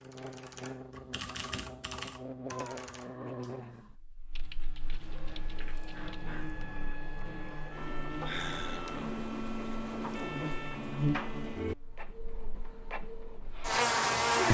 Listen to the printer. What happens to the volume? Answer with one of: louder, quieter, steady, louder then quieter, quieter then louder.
louder then quieter.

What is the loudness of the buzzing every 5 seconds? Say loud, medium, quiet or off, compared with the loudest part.
quiet, quiet, loud.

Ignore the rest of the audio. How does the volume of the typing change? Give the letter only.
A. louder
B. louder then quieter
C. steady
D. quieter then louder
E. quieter
E.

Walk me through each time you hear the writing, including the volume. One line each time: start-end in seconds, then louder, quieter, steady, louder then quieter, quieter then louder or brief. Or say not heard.
not heard.